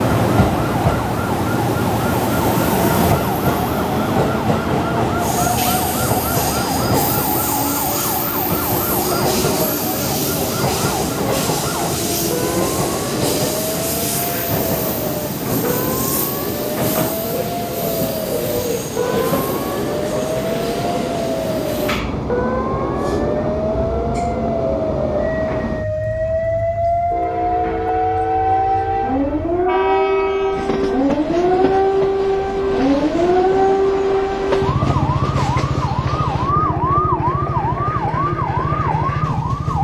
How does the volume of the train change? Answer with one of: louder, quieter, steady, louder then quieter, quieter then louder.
quieter.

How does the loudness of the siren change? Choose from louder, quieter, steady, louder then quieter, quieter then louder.
louder.